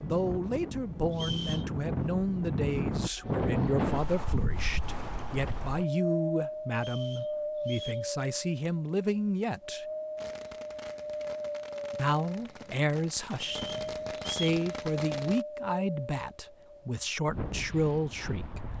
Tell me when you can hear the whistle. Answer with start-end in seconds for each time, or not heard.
1.1-1.7, 6.8-8.1, 13.4-14.6.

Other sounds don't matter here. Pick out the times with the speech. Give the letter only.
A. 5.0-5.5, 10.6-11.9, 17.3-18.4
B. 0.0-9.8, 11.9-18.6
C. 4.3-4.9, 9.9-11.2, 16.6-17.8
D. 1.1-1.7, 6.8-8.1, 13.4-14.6
B.